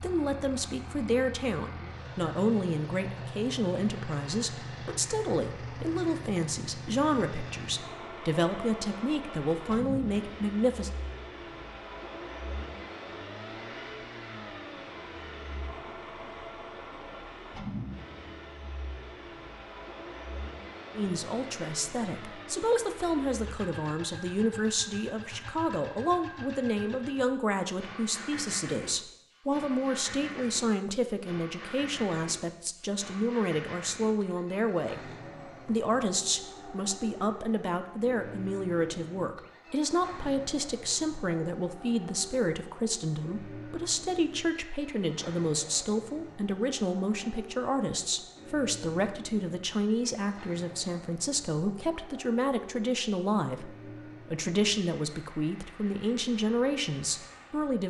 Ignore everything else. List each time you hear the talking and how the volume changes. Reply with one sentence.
You can hear the talking from 0.0 to 10.9 s, at a steady volume; and from 20.9 to 57.8 s, at a steady volume.